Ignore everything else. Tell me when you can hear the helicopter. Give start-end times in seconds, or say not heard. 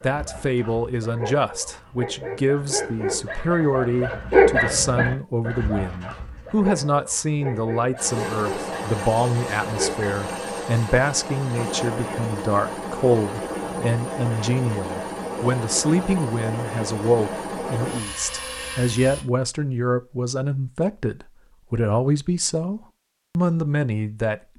8.0-19.2.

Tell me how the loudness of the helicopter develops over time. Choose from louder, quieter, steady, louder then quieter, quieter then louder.
steady.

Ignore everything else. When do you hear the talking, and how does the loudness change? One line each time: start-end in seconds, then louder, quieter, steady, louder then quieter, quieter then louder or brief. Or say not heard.
0.0-24.4 steady.